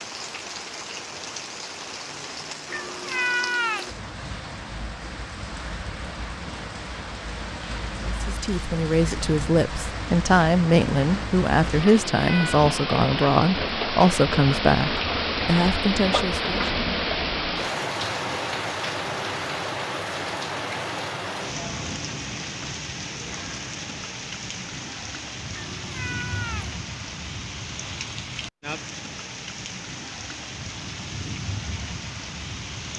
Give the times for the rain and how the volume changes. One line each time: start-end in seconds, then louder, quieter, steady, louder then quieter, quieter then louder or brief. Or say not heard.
0.0-32.9 louder then quieter.